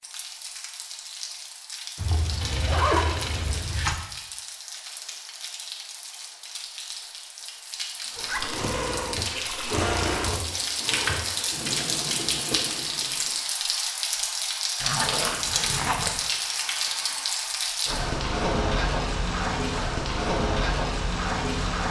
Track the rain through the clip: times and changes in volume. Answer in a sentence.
You can hear the rain from 0.0 to 21.8 s, getting louder.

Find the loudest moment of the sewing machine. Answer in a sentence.
The loudest moment of the sewing machine is at 10 seconds.